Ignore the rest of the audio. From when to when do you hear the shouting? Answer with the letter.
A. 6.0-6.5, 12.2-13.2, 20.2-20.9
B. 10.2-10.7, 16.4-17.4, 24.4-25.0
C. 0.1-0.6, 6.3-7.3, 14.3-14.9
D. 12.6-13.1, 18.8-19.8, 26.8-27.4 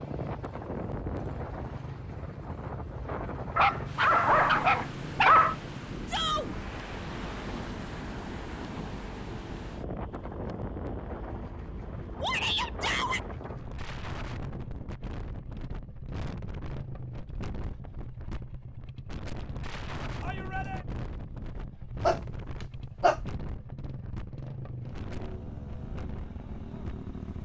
A.